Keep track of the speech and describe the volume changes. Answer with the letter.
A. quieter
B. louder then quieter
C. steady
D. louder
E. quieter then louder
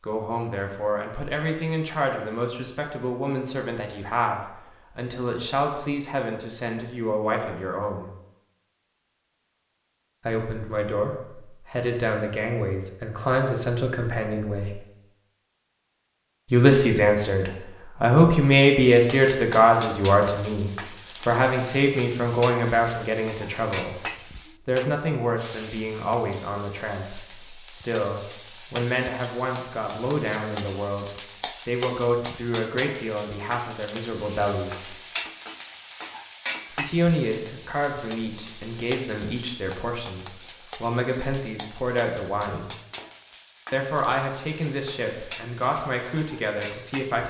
B.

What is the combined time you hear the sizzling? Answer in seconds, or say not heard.
28 s.